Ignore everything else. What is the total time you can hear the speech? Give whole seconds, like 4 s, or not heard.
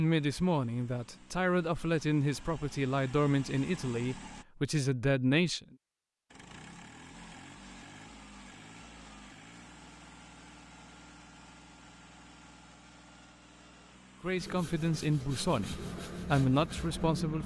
9 s.